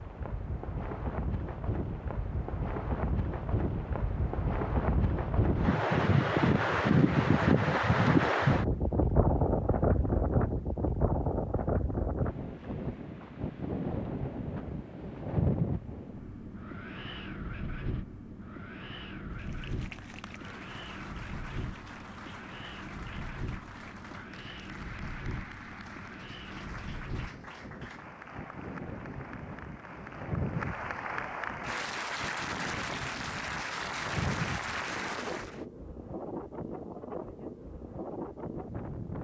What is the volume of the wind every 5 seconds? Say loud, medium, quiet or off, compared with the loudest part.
medium, loud, medium, medium, quiet, quiet, quiet, quiet.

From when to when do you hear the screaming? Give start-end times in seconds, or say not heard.
not heard.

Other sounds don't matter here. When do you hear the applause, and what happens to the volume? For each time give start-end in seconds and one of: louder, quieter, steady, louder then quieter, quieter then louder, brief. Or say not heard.
19.3-35.6 louder.